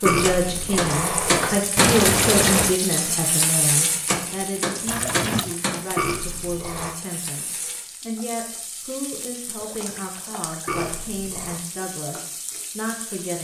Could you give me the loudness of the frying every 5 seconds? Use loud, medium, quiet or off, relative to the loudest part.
loud, medium, quiet.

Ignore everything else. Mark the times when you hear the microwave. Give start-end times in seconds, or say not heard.
not heard.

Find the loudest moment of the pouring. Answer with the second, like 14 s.
2 s.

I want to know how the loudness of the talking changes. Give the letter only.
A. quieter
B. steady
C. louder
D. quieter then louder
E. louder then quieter
A.